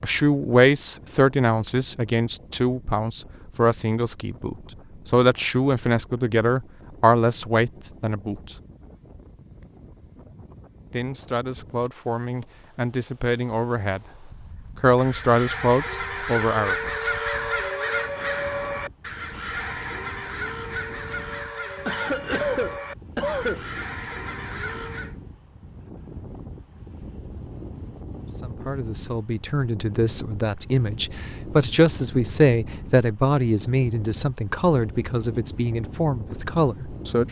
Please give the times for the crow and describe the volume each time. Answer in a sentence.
The crow can be heard from 14.8 to 25.1 s, getting quieter.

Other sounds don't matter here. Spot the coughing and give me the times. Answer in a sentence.
The coughing can be heard from 21.9 to 23.6 s.